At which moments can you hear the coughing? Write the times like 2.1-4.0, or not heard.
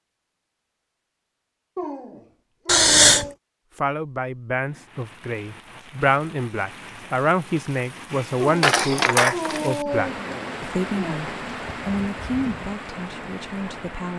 2.6-3.2, 8.6-9.6.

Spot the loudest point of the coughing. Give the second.
3 s.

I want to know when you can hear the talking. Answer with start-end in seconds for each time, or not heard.
3.8-14.1.